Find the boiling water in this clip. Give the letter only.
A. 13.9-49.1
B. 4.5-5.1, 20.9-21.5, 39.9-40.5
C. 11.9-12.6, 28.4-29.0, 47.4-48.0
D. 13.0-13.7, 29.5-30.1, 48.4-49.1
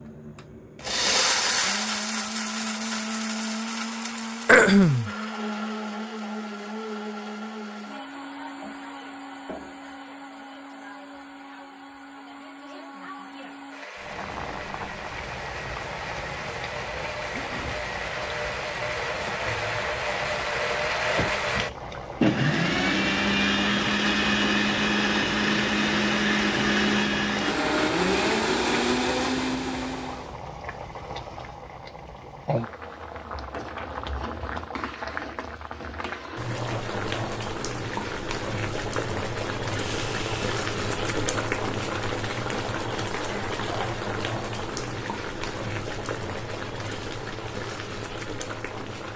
A.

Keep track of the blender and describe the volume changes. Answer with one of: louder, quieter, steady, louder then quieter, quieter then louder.
quieter then louder.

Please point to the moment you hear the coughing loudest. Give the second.
5 s.